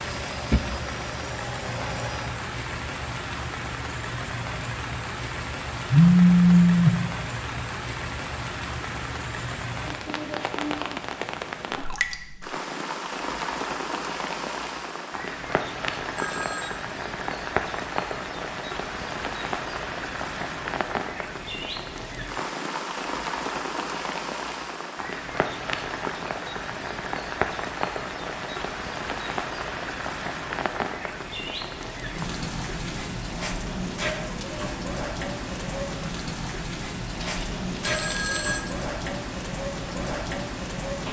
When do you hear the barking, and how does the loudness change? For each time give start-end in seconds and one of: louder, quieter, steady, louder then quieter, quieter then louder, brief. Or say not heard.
not heard.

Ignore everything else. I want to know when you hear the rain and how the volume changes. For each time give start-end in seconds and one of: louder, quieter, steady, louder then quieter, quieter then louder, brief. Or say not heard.
0.0-41.0 steady.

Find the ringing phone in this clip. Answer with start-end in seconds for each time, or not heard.
5.9-7.0, 16.1-16.8, 37.1-38.6.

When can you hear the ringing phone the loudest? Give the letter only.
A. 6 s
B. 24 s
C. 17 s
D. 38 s
A.